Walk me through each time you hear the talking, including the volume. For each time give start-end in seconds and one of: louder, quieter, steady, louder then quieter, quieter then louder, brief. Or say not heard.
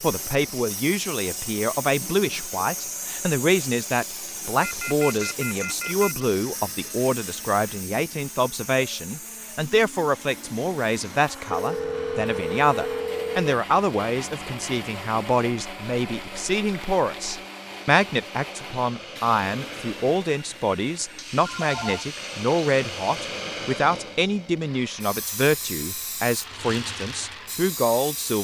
0.0-28.3 steady.